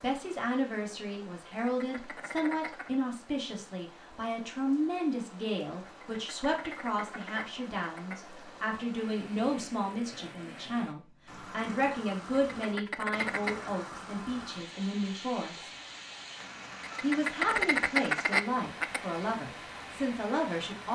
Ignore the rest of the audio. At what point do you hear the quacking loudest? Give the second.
18 s.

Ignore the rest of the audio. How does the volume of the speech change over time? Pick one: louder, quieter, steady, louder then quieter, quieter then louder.
steady.